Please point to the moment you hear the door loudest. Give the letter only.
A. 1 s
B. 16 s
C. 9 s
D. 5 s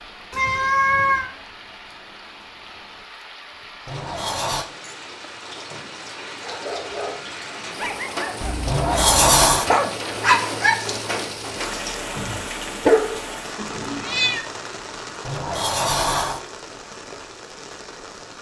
C.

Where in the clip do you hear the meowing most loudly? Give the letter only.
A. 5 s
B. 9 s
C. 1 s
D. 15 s
C.